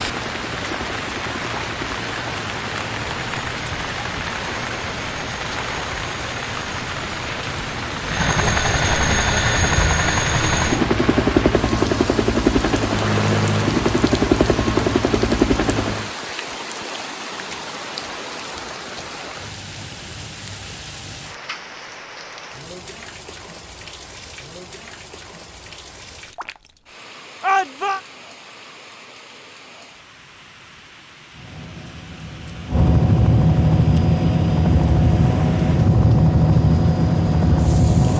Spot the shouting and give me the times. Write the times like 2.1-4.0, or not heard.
27.4-28.0.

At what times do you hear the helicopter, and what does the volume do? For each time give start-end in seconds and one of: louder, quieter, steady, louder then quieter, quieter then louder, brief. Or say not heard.
0.0-16.1 louder
31.3-38.1 louder.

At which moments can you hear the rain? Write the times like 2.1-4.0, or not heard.
0.0-38.1.